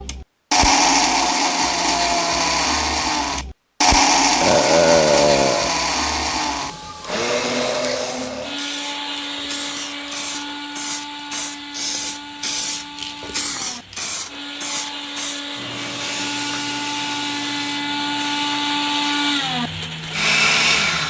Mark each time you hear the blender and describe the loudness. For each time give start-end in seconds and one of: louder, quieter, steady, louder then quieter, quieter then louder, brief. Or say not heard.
0.0-21.0 quieter then louder.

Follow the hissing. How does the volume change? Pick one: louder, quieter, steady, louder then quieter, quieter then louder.
louder then quieter.